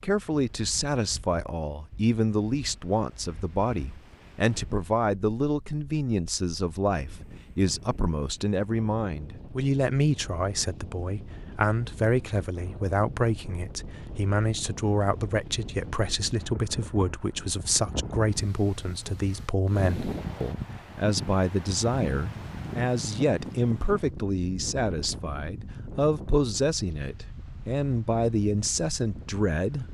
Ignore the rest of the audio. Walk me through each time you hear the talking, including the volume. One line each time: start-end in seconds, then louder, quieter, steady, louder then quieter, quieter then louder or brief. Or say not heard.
0.0-29.9 steady.